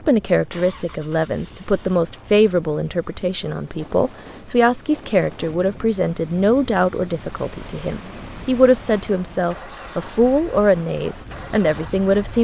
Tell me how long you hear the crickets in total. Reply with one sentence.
You can't hear the crickets here.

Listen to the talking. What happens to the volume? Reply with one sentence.
The volume of the talking stays about the same.